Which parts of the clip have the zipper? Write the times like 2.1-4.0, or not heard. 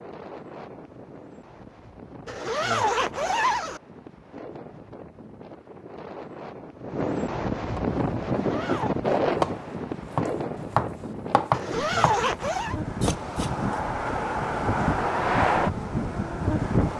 2.2-3.8, 8.2-8.9, 11.5-12.8.